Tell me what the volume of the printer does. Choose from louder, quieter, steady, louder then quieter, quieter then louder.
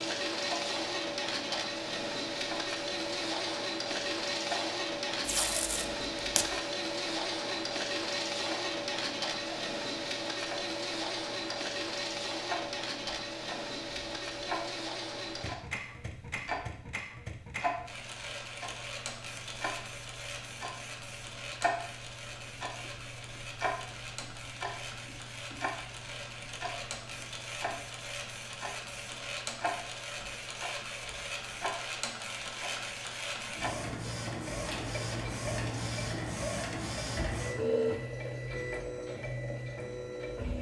quieter then louder.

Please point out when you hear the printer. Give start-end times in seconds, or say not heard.
0.0-40.5.